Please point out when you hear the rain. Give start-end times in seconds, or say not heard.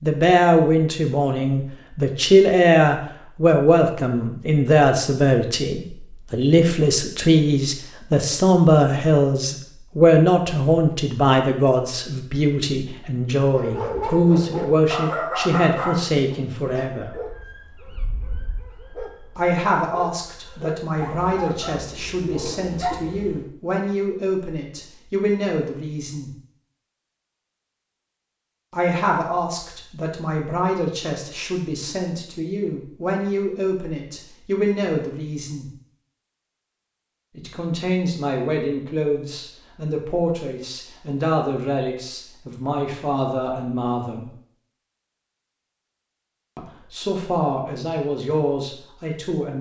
not heard.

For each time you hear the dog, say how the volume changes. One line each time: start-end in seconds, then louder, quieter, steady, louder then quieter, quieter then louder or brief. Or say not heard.
13.5-23.5 quieter then louder.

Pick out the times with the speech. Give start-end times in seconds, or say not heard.
0.0-17.2, 19.4-26.3, 28.7-35.7, 37.4-44.3, 46.5-49.5.